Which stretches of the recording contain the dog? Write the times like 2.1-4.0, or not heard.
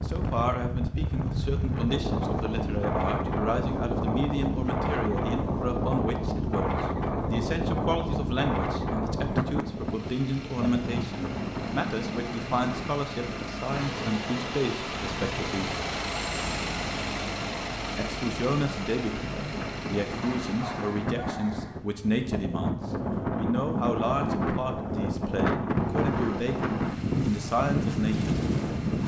20.4-21.8.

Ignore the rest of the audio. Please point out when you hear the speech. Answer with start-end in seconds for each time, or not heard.
0.0-15.7, 17.9-28.4.